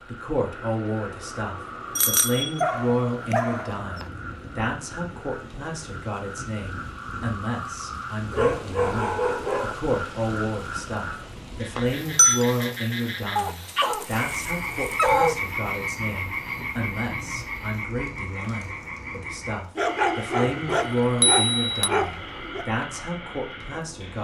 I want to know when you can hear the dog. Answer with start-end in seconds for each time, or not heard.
2.5-4.1, 8.3-9.8, 13.3-15.3, 19.8-22.6.